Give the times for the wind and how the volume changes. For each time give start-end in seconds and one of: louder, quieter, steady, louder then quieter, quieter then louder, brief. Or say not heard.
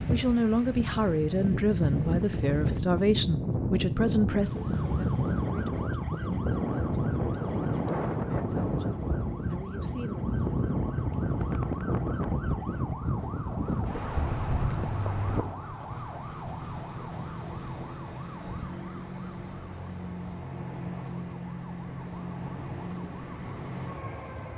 0.0-24.5 quieter.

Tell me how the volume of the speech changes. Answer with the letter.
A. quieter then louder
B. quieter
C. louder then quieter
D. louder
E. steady
B.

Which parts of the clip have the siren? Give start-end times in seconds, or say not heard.
4.3-24.5.